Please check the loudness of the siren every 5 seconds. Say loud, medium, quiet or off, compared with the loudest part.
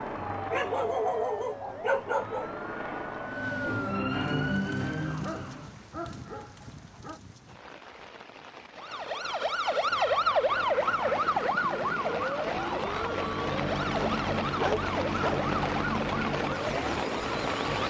medium, loud, loud, medium.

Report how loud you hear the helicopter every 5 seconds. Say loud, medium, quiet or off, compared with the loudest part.
medium, off, loud, loud.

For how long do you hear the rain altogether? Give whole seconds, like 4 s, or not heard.
14 s.